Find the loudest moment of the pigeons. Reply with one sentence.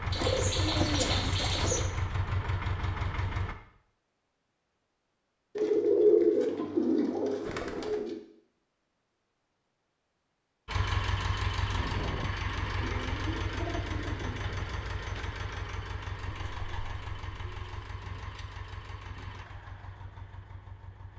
The loudest moment of the pigeons is at 6 seconds.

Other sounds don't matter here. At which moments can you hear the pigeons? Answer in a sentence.
The pigeons can be heard from 0.1 to 1.9 s, from 5.5 to 8.2 s, from 12.4 to 14.3 s and from 16.2 to 17.9 s.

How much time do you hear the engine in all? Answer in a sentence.
You can hear the engine for 14 seconds altogether.